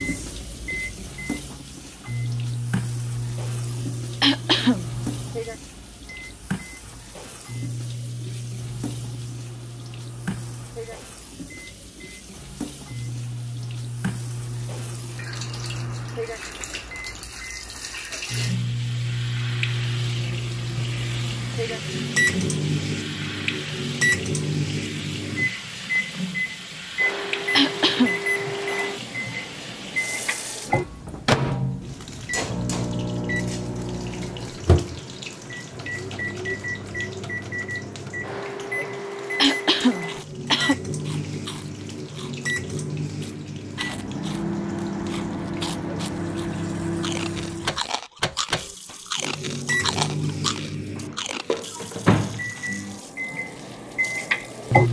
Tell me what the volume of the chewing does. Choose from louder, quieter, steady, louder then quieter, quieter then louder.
louder.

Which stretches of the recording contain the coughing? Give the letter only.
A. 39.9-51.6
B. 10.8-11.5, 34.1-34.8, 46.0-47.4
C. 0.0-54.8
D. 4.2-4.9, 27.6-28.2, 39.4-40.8
D.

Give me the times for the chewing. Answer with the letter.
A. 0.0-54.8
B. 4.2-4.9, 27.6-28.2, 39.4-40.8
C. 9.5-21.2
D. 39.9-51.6
D.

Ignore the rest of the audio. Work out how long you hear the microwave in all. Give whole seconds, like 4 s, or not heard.
55 s.